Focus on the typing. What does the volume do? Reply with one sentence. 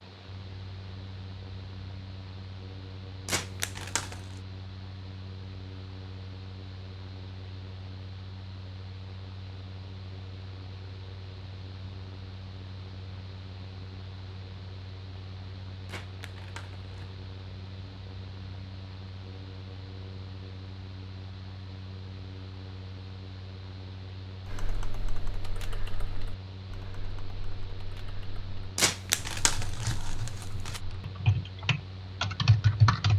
The volume of the typing goes down, then up.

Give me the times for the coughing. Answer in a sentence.
You can't hear the coughing here.